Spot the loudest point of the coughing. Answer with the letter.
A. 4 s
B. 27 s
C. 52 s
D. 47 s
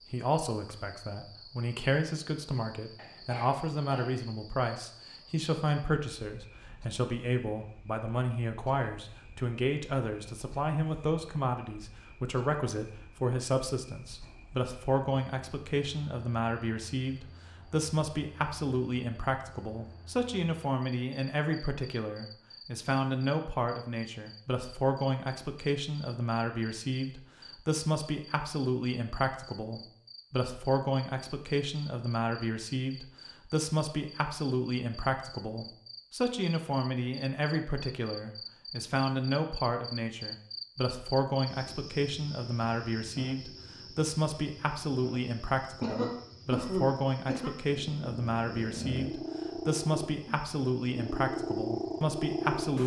D.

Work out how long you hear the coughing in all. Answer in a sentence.
The coughing can be heard for 3 seconds in total.